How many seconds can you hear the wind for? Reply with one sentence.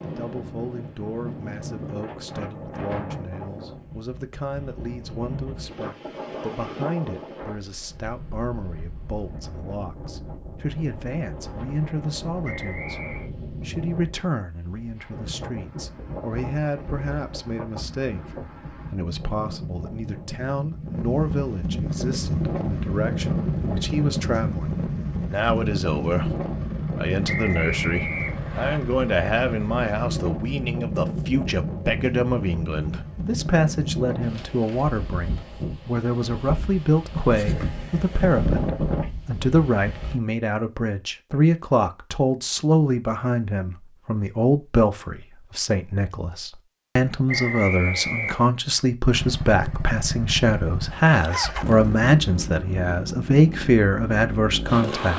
The wind can be heard for 40 seconds in total.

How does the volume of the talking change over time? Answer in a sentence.
The volume of the talking goes up.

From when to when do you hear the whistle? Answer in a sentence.
The whistle can be heard from 12.4 to 13.2 s, from 27.2 to 28.8 s and from 47.2 to 48.5 s.